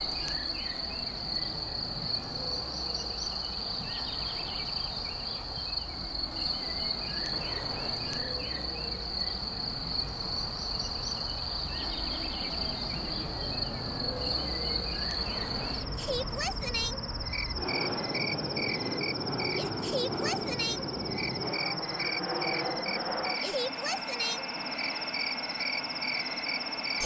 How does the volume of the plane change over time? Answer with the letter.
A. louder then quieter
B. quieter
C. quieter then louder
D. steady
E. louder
E.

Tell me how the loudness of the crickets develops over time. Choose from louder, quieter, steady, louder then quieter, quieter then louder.
steady.